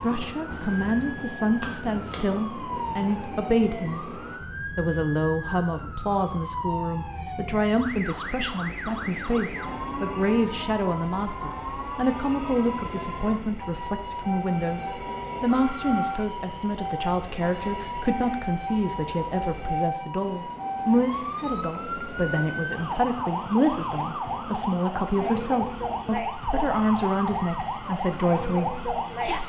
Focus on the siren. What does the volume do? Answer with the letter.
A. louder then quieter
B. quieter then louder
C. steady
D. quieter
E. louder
E.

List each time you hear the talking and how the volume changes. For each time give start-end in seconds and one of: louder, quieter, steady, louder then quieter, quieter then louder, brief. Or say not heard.
0.0-29.4 steady.